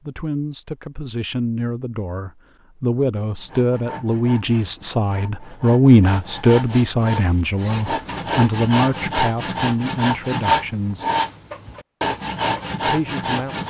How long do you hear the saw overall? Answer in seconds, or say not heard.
10 s.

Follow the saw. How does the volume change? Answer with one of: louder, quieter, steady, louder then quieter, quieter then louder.
louder.